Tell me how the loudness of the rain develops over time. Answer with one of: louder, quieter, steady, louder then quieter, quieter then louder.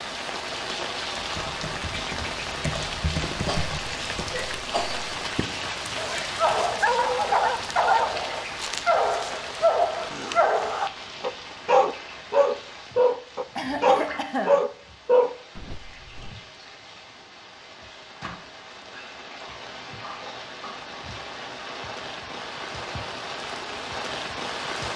quieter then louder.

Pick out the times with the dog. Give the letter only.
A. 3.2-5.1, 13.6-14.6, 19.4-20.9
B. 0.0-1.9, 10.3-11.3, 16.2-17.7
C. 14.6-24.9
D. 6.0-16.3
D.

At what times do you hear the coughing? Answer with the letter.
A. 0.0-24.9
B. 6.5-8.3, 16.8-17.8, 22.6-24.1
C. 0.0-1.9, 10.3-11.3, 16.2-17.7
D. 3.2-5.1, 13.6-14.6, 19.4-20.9
D.